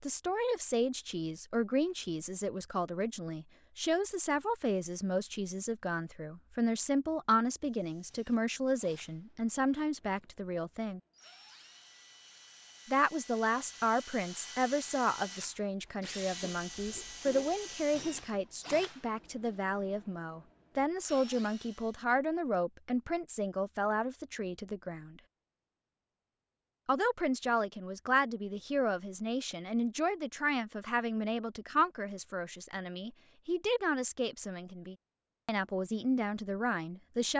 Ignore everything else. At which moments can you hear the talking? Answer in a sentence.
The talking can be heard from 0.0 to 11.0 s, from 12.8 to 25.2 s and from 26.9 to 37.3 s.